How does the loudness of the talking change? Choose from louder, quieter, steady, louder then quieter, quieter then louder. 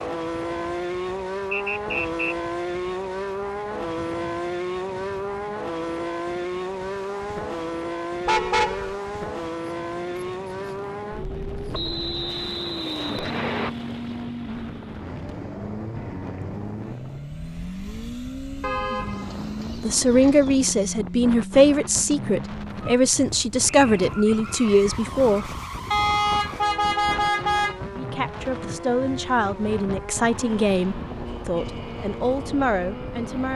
quieter.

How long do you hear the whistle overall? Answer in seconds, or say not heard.
3 s.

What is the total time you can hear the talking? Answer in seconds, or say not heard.
11 s.